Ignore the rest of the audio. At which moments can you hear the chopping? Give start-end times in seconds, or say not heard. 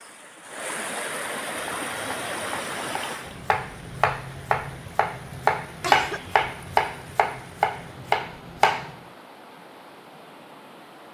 1.5-8.9.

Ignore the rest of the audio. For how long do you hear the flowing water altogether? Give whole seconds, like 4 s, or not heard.
11 s.